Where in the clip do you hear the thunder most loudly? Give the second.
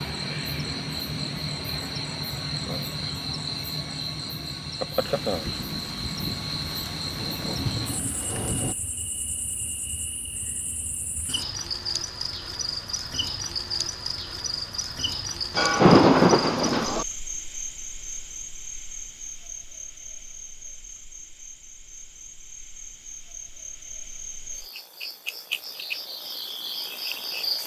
16 s.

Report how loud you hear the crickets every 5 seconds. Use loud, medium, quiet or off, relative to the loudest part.
loud, loud, loud, loud, medium, loud.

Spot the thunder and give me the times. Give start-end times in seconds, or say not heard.
5.0-8.8, 15.6-17.1.